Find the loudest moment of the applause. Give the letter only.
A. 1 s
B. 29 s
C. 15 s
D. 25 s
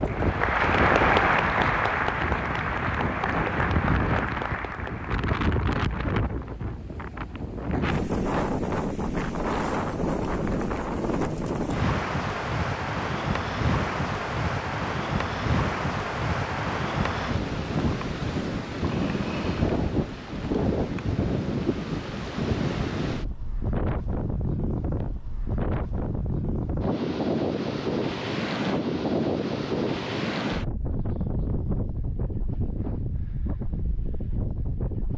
A.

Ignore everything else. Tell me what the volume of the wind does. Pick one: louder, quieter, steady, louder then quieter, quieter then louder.
steady.